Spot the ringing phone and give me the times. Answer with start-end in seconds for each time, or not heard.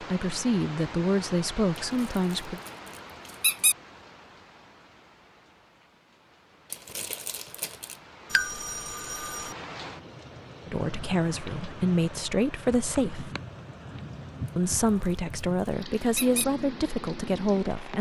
8.3-9.6.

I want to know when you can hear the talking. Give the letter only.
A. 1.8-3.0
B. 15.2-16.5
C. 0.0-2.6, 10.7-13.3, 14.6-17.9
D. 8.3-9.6
C.